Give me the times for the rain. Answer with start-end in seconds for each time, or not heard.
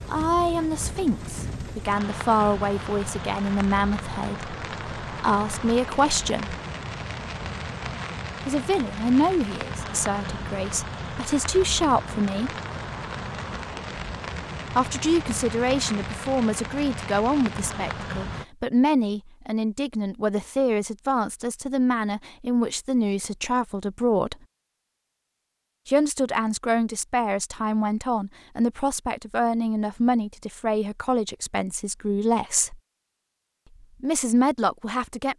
0.0-18.4.